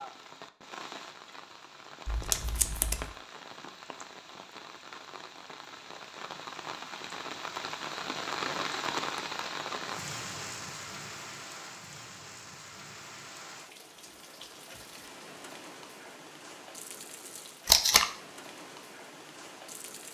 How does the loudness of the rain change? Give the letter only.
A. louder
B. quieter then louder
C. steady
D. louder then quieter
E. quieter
D.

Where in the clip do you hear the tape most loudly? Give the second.
18 s.